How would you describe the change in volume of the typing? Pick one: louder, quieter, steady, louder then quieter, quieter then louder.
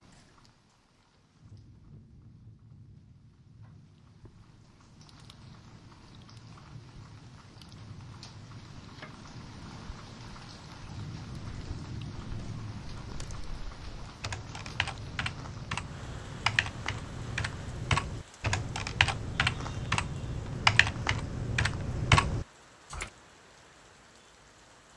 louder.